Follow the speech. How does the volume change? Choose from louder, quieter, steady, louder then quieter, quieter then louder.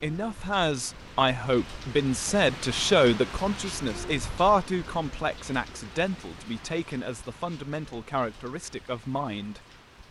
quieter.